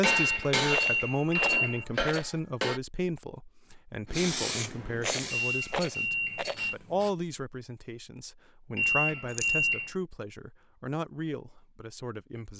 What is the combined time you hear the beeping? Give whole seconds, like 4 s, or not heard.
4 s.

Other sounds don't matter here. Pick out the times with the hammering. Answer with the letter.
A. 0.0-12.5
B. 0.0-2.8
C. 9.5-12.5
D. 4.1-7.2
B.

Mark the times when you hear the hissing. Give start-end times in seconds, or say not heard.
4.1-7.2.